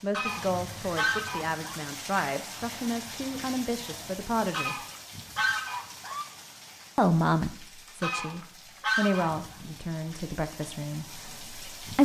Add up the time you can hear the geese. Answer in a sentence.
The geese can be heard for 5 seconds in total.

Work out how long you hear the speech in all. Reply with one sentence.
You can hear the speech for 10 seconds altogether.